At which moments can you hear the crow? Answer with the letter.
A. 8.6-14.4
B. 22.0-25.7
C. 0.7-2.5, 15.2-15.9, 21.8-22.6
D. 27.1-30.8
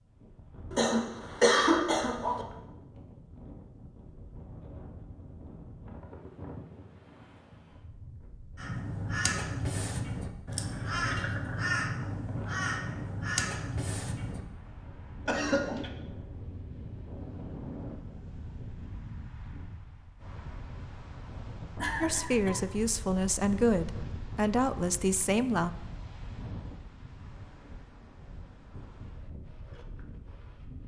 A.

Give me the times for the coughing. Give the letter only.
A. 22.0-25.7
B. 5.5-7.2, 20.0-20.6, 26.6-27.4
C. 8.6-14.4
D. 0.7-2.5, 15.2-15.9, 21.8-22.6
D.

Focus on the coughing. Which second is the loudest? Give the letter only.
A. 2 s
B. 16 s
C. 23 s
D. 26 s
A.